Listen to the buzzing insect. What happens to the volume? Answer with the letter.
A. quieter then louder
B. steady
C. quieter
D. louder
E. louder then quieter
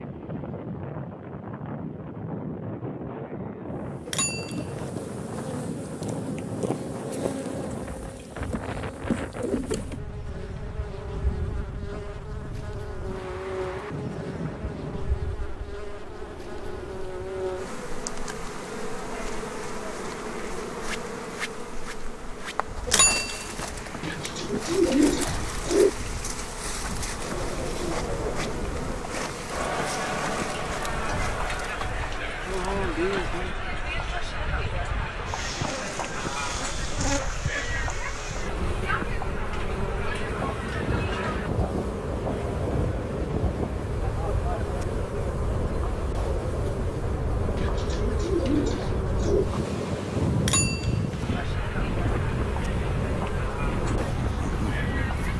B.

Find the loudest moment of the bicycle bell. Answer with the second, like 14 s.
23 s.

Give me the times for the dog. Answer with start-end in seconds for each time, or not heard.
not heard.